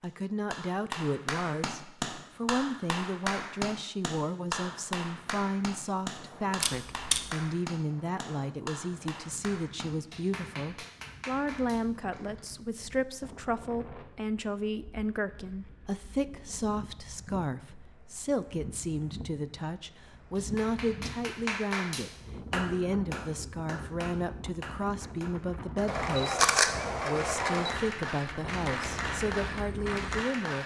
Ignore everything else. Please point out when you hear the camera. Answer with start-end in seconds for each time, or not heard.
6.6-7.2, 25.9-27.8.